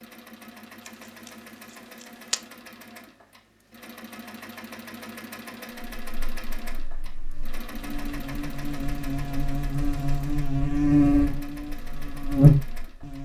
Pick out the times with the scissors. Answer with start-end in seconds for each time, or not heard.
0.8-2.5.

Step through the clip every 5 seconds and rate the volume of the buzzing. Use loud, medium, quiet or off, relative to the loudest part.
off, quiet, loud.